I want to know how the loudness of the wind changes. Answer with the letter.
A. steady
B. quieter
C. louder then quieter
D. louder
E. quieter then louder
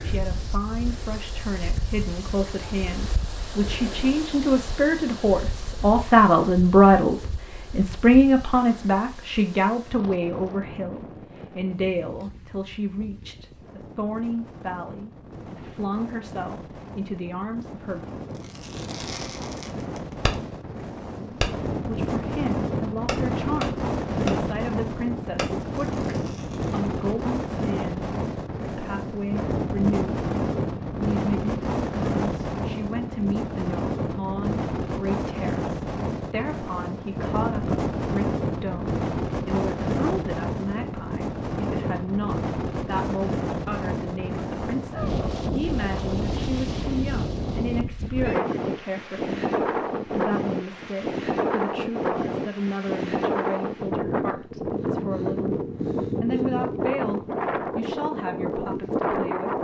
D.